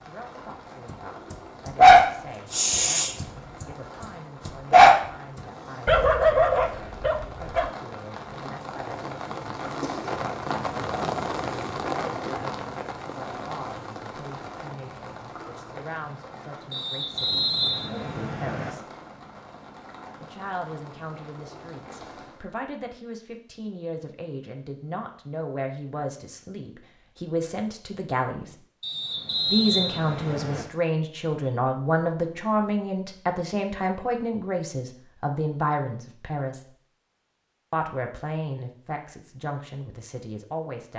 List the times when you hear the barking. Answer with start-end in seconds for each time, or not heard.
1.3-5.0, 5.8-7.8.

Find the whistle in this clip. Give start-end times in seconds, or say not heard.
16.7-18.7, 28.8-30.6.